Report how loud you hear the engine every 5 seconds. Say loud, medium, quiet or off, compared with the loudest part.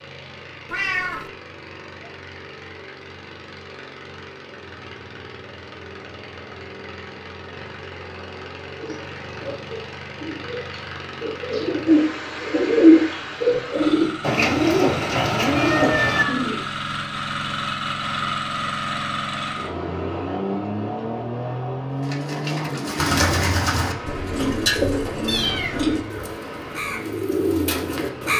quiet, medium, medium, loud, loud, medium.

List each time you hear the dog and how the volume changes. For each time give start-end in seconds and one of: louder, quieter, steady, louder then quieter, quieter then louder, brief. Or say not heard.
not heard.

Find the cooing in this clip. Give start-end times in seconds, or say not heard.
8.8-16.6, 22.1-28.3.